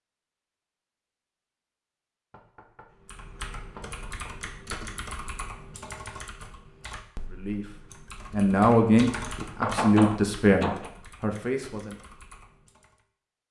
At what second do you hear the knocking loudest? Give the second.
10 s.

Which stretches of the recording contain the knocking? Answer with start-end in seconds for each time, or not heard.
2.3-2.9, 3.8-4.3, 9.6-10.9.